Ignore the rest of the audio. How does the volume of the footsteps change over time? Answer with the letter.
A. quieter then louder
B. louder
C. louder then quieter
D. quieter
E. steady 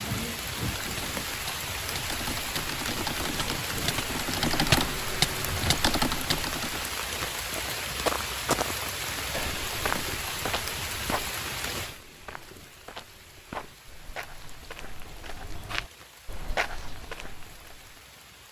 A.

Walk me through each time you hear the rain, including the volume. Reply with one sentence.
You can hear the rain from 0.0 to 18.4 s, getting quieter.